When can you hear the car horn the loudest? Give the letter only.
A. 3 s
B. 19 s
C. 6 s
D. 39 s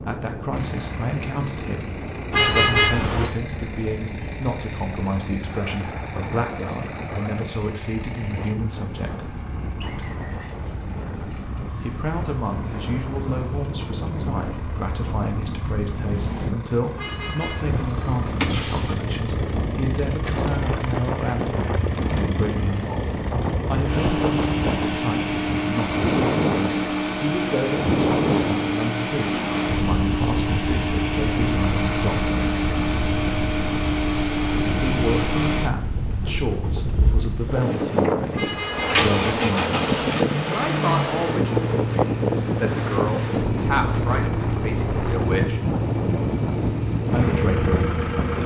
A.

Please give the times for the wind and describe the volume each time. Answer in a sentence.
The wind can be heard from 0.0 to 48.4 s, getting louder.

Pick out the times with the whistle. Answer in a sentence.
You can hear the whistle from 9.8 to 10.6 s.